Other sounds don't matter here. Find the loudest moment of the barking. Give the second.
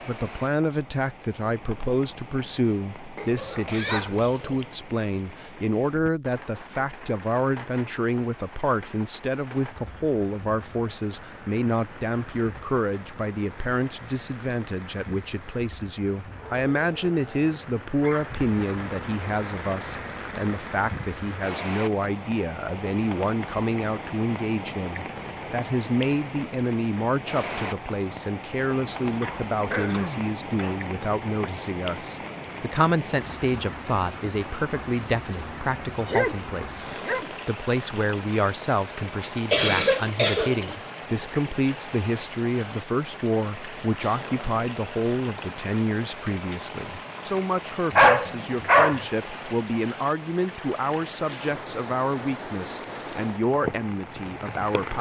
48 s.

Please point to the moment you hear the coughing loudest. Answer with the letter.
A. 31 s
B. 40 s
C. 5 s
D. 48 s
B.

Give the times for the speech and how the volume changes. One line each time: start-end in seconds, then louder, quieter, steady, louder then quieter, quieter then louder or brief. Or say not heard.
0.1-36.9 steady
37.5-54.9 steady.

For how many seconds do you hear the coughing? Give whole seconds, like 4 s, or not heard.
3 s.